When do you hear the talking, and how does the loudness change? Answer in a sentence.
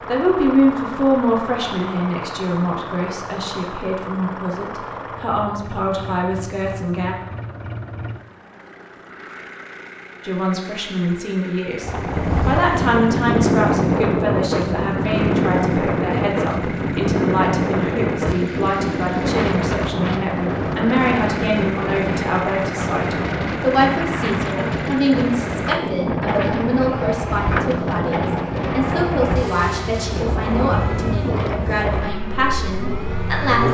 The talking can be heard from 0.1 to 7.2 s, getting quieter; and from 10.2 to 33.6 s, at a steady volume.